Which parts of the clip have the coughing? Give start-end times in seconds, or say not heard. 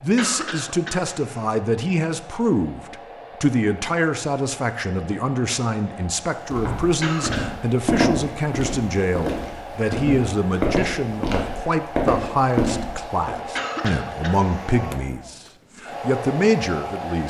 0.1-1.6, 7.0-7.5, 13.6-14.8.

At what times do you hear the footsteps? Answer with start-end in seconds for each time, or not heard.
6.5-13.3.